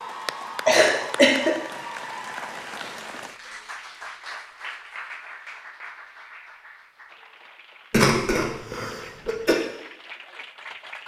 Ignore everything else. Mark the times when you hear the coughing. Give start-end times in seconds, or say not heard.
0.7-1.6, 7.9-9.6.